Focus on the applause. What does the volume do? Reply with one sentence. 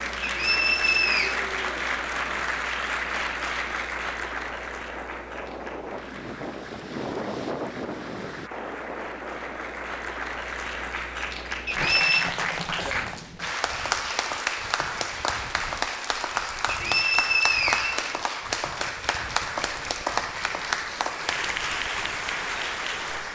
The volume of the applause goes down, then up.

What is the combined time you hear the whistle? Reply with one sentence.
The whistle can be heard for 3 seconds in total.